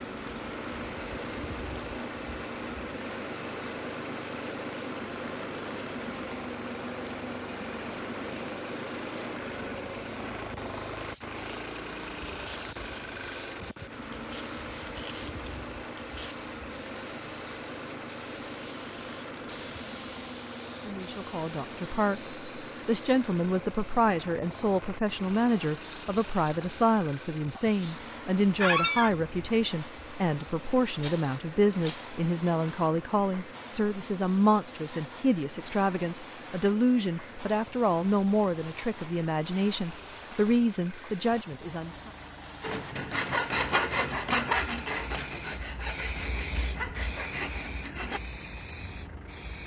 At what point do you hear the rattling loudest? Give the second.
32 s.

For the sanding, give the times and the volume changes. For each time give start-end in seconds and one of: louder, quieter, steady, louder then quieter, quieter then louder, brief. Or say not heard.
42.6-48.2 quieter.